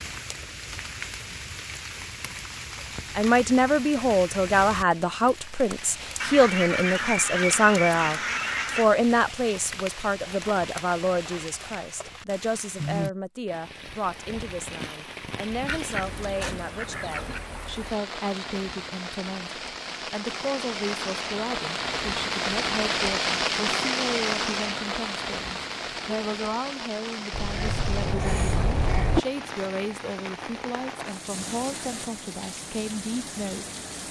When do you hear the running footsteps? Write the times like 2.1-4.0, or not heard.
not heard.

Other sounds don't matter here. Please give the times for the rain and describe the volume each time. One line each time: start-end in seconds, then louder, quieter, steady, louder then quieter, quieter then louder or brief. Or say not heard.
0.0-34.0 louder then quieter.